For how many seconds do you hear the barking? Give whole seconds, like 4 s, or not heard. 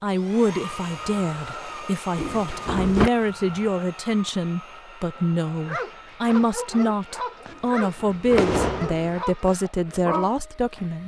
6 s.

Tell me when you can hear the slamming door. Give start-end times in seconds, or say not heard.
2.1-3.1, 7.5-9.2.